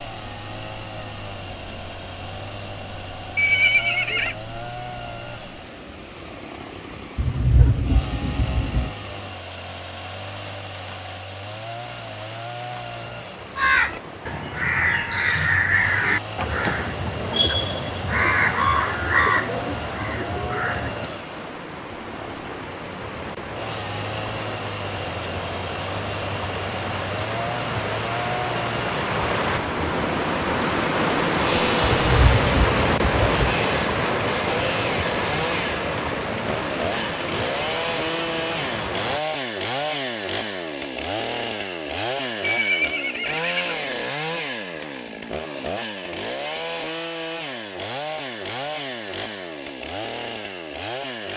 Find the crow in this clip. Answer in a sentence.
The crow can be heard from 13.6 to 21.1 s.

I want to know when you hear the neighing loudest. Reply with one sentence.
The loudest moment of the neighing is at 4 seconds.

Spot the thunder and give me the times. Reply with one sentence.
The thunder can be heard from 7.2 to 8.9 s and from 31.8 to 33.5 s.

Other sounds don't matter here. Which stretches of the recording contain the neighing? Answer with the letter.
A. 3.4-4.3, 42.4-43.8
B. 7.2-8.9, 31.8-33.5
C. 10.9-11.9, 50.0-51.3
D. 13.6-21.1
A.